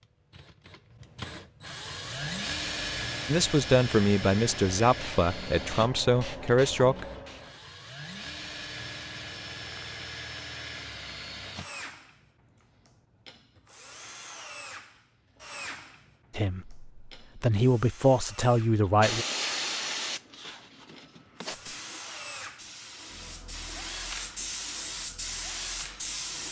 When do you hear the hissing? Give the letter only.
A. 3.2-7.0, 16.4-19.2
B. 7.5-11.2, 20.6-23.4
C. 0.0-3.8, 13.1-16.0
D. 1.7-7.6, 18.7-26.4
D.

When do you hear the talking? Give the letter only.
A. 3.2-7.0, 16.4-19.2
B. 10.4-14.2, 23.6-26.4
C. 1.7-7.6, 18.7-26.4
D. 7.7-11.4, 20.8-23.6
A.